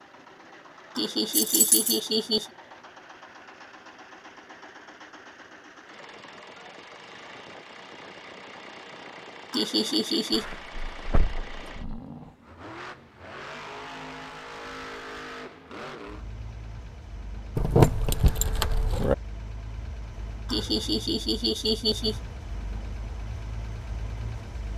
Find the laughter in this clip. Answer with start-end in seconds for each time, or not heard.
0.9-2.5, 9.5-10.4, 20.4-22.2.